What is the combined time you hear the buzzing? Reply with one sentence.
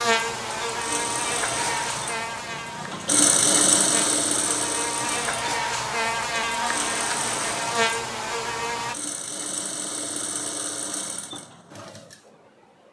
The buzzing can be heard for 9 seconds in total.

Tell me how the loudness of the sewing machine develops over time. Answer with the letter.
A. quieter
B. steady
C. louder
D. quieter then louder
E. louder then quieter
E.